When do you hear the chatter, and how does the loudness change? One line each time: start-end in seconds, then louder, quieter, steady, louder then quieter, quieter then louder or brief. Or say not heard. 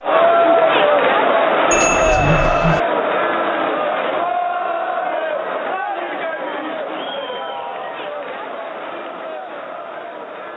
0.0-10.5 quieter.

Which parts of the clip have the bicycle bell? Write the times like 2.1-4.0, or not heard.
1.7-2.8.